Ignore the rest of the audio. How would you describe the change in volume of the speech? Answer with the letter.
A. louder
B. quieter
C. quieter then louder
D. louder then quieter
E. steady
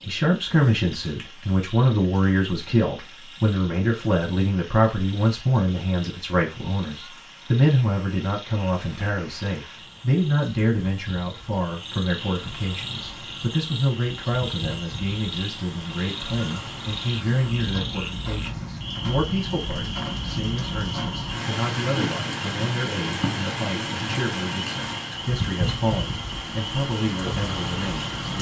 B.